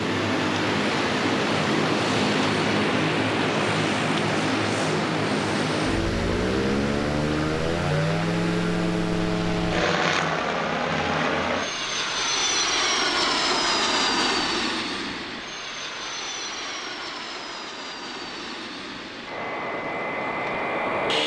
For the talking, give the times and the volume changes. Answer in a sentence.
You can't hear the talking here.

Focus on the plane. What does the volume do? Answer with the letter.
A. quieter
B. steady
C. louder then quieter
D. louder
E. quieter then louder
A.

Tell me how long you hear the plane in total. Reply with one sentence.
The plane can be heard for 21 seconds in total.